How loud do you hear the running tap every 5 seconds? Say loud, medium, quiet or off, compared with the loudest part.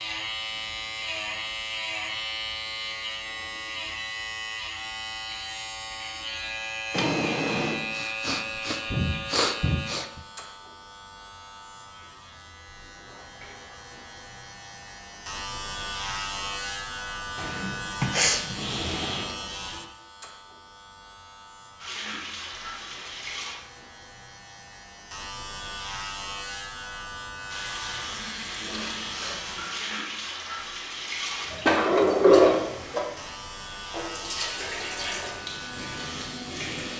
off, off, off, off, loud, loud, loud, loud.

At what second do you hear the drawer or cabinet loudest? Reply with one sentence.
The loudest moment of the drawer or cabinet is at 32 seconds.